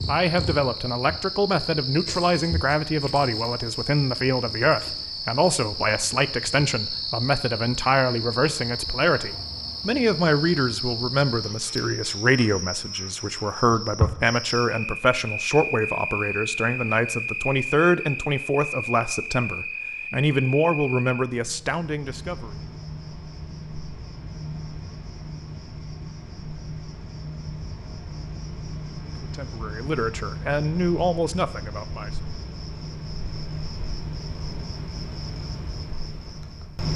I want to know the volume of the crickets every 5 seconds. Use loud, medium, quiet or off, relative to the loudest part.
loud, loud, loud, loud, medium, medium, medium, loud.